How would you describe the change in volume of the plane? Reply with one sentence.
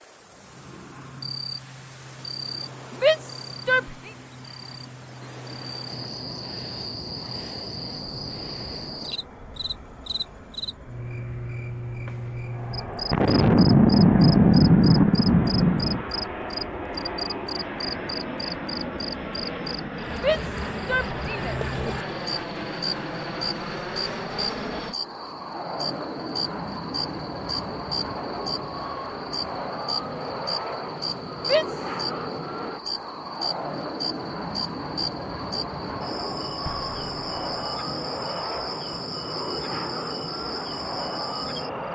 The volume of the plane goes up.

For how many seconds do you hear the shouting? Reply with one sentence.
The shouting can be heard for 3 seconds in total.